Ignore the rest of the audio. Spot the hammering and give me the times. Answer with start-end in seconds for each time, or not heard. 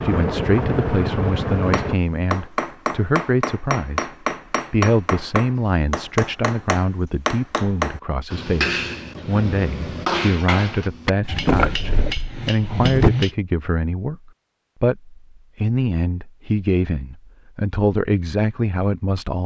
1.7-13.3.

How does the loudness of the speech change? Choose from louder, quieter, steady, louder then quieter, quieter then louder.
steady.